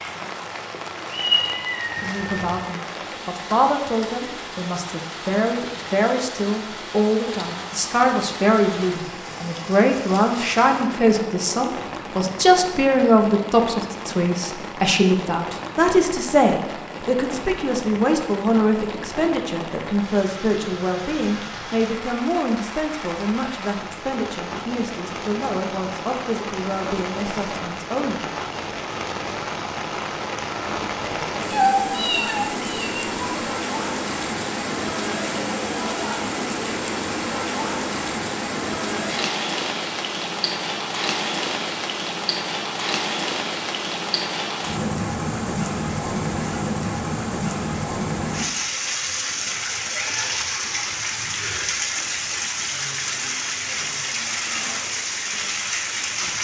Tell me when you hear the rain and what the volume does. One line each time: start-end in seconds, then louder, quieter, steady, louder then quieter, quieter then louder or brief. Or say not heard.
0.0-56.3 louder.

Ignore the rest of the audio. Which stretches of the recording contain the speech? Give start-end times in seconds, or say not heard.
2.0-28.3.